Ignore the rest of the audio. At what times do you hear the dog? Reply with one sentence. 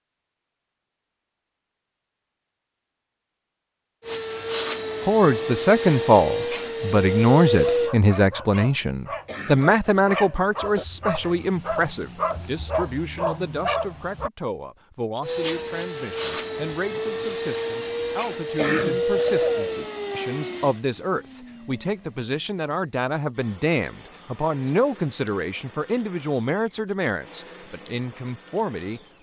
The dog can be heard from 7.5 to 14.3 s.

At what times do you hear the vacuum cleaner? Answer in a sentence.
The vacuum cleaner can be heard from 4.0 to 8.0 s and from 15.2 to 29.1 s.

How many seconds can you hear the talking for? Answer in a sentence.
The talking can be heard for 24 seconds in total.